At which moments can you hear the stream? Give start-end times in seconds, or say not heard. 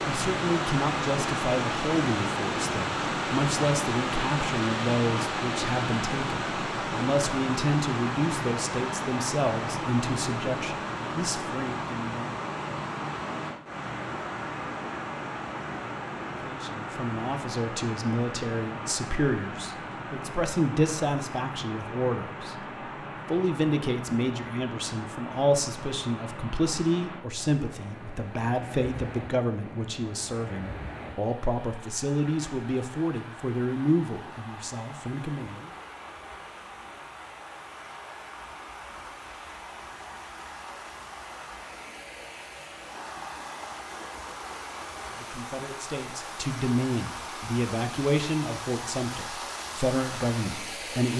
0.0-51.1.